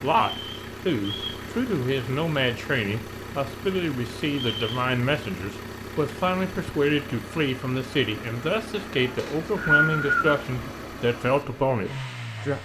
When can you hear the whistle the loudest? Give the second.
10 s.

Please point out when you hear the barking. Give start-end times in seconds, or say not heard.
not heard.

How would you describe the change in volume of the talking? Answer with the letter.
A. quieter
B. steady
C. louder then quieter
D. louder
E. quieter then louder
B.